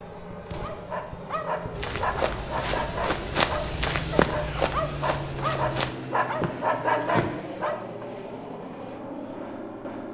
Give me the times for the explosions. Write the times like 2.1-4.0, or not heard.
0.5-0.9.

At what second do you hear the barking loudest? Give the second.
7 s.